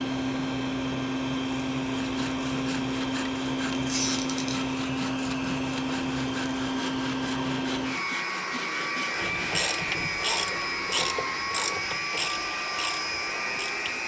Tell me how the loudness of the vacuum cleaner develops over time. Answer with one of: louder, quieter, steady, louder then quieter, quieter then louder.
steady.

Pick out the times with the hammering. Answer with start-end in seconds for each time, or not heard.
not heard.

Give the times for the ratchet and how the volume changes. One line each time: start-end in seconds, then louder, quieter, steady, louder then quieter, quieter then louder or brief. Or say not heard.
9.2-14.0 quieter.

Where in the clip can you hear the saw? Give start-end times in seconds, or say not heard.
1.9-9.5.